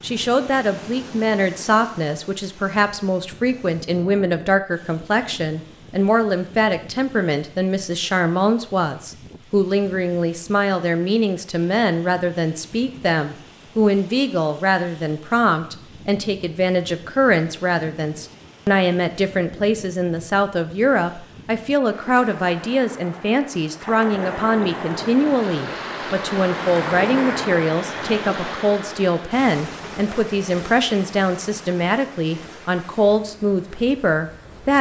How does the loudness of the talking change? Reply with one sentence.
The volume of the talking stays about the same.